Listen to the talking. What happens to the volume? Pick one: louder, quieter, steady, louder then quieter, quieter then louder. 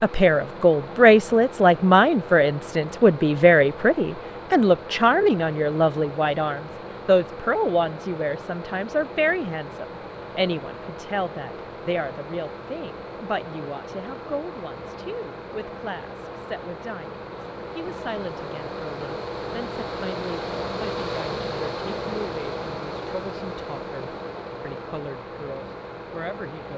quieter.